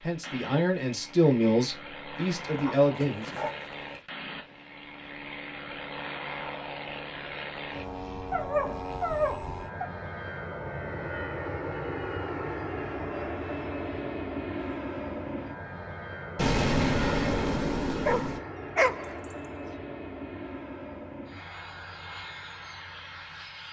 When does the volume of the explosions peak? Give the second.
17 s.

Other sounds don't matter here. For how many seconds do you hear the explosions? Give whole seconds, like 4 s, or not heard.
2 s.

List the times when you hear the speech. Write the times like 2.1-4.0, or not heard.
0.0-3.5.